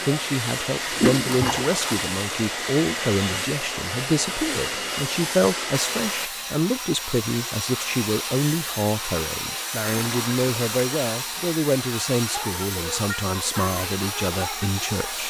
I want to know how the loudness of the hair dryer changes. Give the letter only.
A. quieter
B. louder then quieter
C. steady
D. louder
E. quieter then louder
C.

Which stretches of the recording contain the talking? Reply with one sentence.
You can hear the talking from 0.0 to 15.2 s.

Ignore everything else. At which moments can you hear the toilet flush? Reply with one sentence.
You can hear the toilet flush from 0.9 to 2.4 s and from 9.8 to 10.8 s.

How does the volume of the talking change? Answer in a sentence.
The volume of the talking stays about the same.